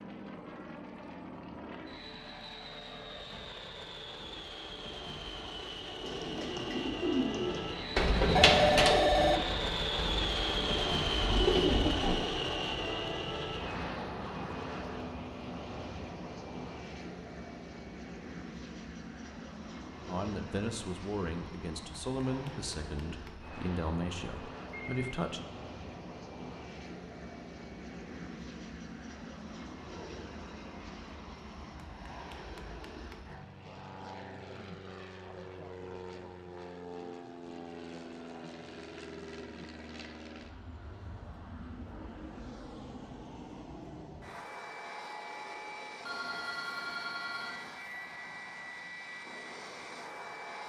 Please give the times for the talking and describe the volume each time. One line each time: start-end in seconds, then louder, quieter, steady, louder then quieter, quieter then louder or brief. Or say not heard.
20.1-25.4 steady.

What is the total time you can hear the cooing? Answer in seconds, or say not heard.
6 s.